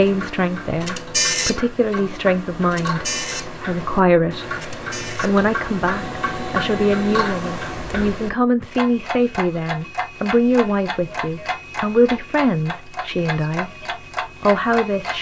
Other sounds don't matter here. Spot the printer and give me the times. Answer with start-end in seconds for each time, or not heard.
0.0-8.2.